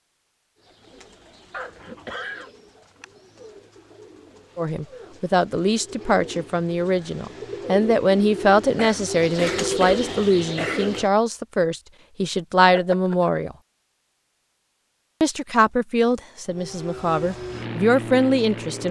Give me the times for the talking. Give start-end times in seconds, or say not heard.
4.5-13.6, 15.2-18.8.